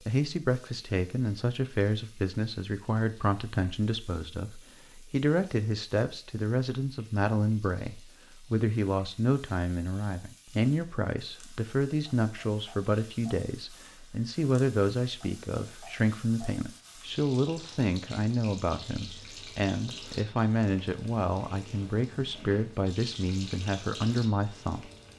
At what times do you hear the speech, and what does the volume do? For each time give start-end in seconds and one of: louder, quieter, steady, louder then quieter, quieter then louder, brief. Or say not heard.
0.1-24.9 steady.